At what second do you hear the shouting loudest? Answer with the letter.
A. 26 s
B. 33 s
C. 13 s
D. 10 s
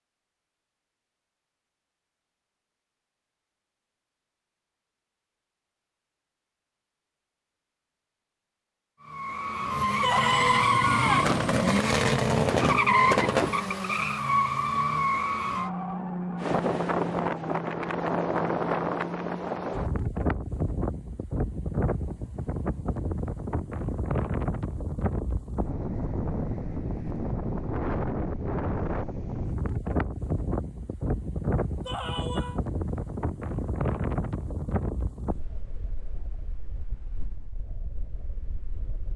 D.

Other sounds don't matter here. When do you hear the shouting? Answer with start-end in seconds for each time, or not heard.
10.0-11.2, 31.9-32.6.